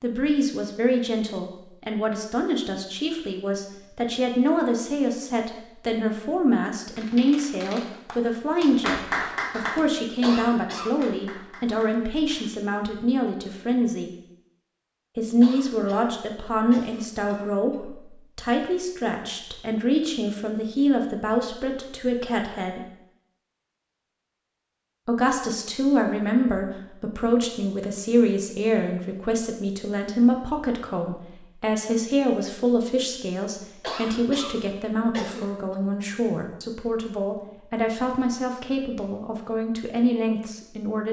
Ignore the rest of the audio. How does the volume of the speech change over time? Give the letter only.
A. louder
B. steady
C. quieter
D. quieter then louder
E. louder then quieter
B.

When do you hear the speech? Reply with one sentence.
You can hear the speech from 0.0 to 14.1 s, from 15.2 to 22.8 s and from 25.1 to 41.0 s.